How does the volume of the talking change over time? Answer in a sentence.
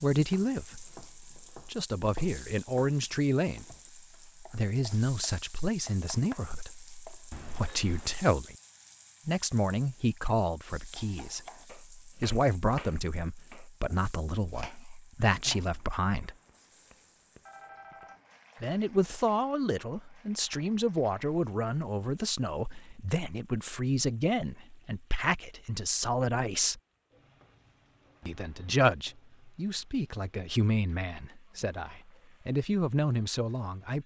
The loudness of the talking stays about the same.